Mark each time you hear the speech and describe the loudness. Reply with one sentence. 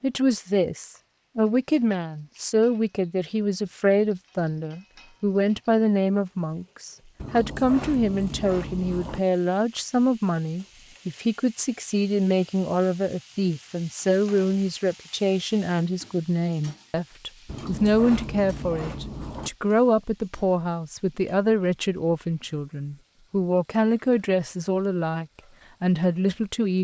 You can hear the speech from 0.0 to 26.7 s, at a steady volume.